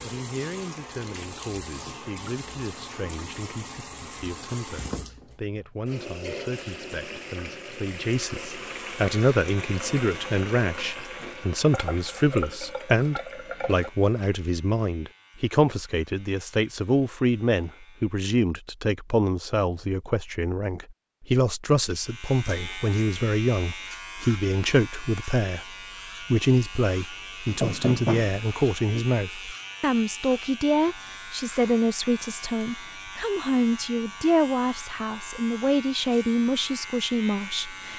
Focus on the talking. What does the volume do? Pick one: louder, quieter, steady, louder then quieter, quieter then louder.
louder.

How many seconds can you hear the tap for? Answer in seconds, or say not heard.
14 s.